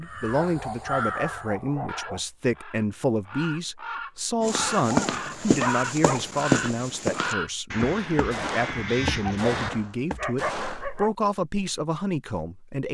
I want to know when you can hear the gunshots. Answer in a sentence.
The gunshots can be heard from 8.3 to 10.9 s.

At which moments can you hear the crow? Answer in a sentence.
You can hear the crow from 0.0 to 9.7 s.